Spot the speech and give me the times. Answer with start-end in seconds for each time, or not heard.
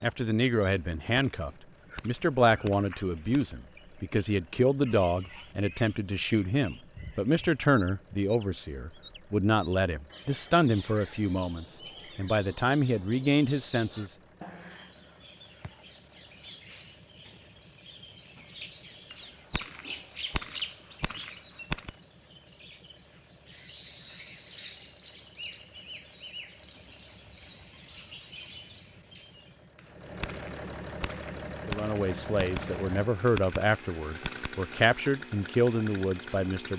0.0-14.2, 31.6-36.7.